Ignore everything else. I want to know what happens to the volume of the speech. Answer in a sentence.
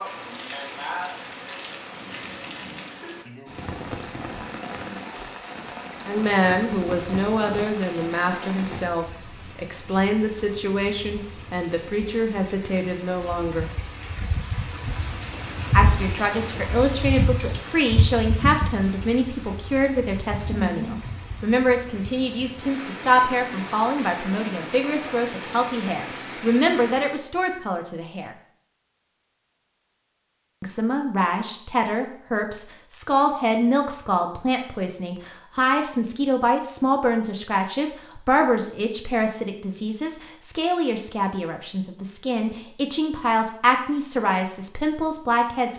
The loudness of the speech stays about the same.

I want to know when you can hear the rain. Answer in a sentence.
The rain can be heard from 0.0 to 27.1 s.